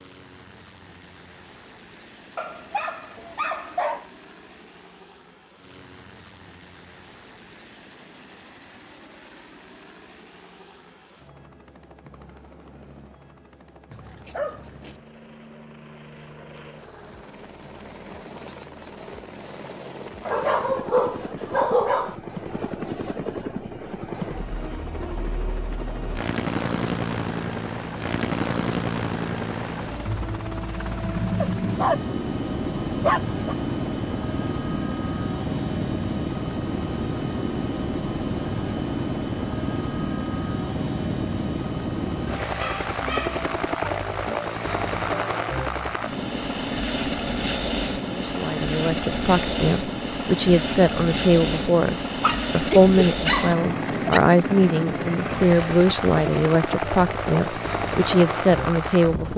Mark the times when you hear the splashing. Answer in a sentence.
You can't hear the splashing here.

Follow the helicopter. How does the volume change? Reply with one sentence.
The volume of the helicopter goes up.